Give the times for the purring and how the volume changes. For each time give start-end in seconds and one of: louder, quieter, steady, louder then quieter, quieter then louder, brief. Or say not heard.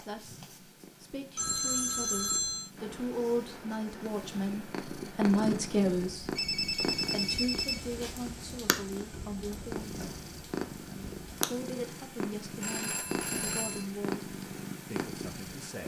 0.0-15.8 louder.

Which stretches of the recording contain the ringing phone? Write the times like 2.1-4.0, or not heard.
1.4-2.7, 6.3-8.2, 12.6-13.8.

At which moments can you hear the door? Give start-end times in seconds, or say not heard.
9.1-10.2.